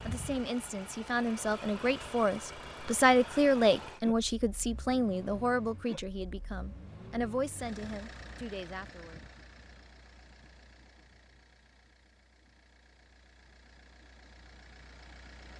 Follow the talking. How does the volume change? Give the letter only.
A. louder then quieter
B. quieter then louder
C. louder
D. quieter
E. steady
A.